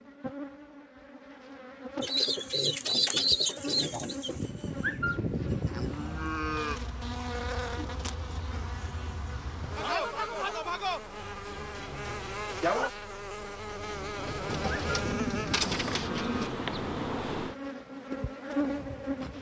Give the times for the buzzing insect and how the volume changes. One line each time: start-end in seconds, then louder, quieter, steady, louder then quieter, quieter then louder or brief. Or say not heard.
0.0-19.3 louder.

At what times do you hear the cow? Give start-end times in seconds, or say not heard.
4.3-6.8, 14.2-16.5.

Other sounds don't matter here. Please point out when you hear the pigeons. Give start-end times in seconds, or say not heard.
2.0-4.5, 14.4-16.5.